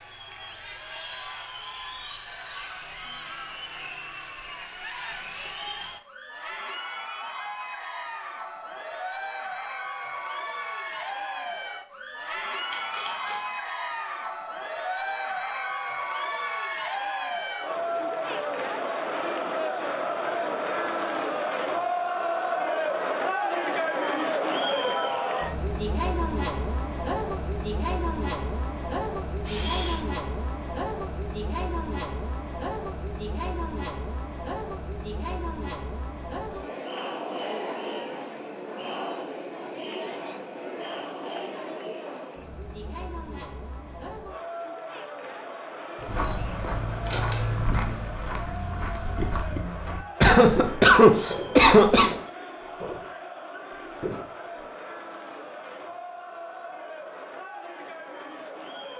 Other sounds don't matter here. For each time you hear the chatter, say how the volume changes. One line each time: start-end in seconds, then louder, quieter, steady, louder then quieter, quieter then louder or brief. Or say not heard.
0.0-58.9 louder then quieter.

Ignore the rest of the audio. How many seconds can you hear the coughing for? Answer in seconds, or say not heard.
2 s.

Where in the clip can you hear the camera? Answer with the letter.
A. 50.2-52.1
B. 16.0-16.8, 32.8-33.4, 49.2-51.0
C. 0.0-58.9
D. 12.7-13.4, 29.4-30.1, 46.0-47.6
D.